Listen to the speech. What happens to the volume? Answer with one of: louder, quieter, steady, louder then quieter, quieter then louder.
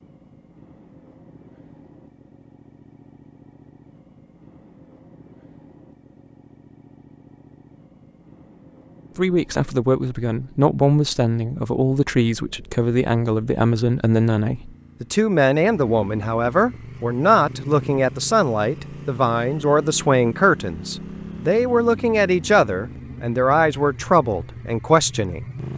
steady.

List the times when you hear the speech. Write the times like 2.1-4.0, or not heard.
9.2-25.4.